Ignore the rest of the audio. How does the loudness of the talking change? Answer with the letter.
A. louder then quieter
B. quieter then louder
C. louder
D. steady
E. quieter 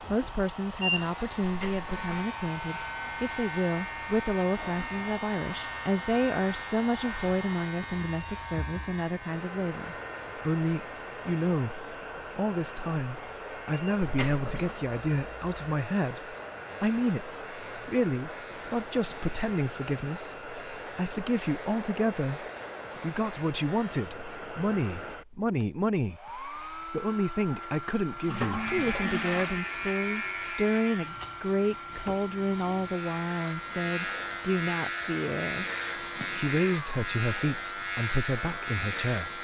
D.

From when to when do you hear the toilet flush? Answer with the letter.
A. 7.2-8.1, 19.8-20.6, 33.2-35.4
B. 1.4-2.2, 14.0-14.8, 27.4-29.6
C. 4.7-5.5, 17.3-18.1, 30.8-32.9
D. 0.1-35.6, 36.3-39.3
B.